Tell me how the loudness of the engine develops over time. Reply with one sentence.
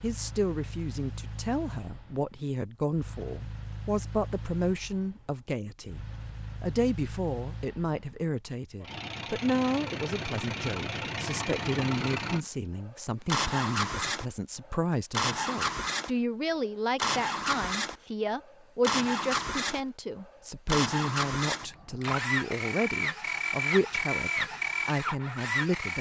The volume of the engine goes up.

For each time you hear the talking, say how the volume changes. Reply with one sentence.
The talking can be heard from 0.0 to 25.9 s, at a steady volume.